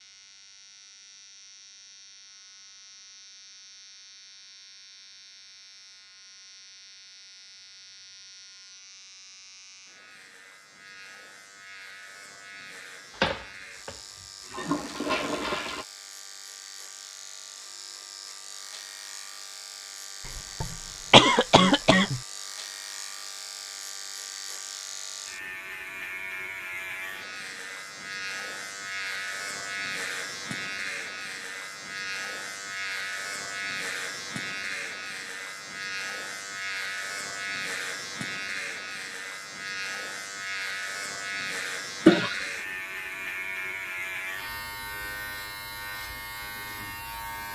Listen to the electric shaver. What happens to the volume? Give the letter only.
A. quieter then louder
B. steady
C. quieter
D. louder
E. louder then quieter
D.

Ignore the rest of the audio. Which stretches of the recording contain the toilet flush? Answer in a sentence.
The toilet flush can be heard from 13.2 to 15.8 s.